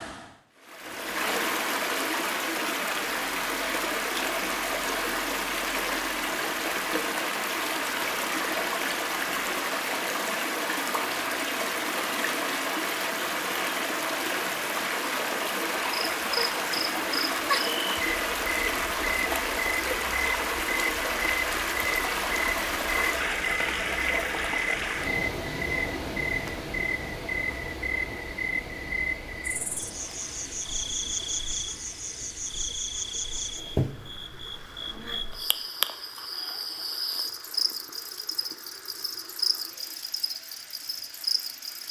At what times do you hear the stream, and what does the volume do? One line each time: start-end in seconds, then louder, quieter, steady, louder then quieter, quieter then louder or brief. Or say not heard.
0.0-41.8 quieter.